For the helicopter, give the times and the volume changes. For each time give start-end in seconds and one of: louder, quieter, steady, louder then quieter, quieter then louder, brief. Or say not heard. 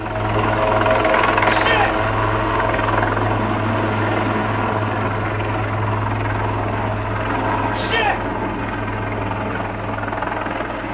0.0-10.8 quieter.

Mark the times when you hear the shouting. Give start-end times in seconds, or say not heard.
1.4-1.9, 7.8-8.2.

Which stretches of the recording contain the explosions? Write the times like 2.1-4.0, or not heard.
not heard.